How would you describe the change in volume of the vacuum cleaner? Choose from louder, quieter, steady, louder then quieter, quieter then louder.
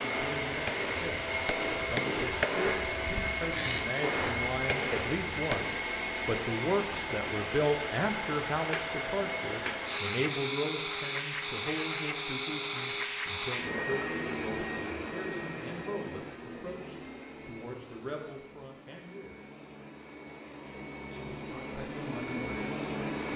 quieter.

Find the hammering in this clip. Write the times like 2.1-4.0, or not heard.
0.0-5.8.